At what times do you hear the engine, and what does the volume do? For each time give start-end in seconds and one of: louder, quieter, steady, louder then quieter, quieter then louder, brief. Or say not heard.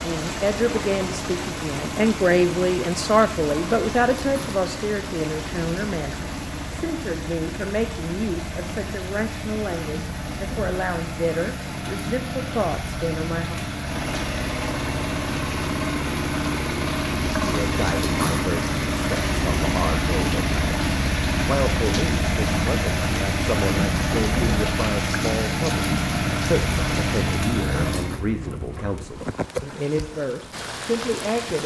0.0-28.2 louder.